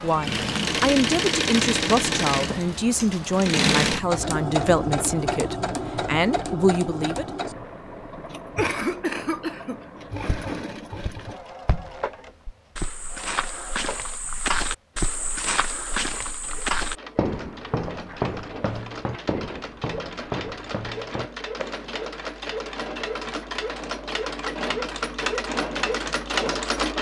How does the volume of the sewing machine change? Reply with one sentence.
The loudness of the sewing machine goes down, then up.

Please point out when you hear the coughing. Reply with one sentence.
You can hear the coughing from 8.6 to 9.8 s.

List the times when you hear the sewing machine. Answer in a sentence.
The sewing machine can be heard from 0.0 to 26.9 s.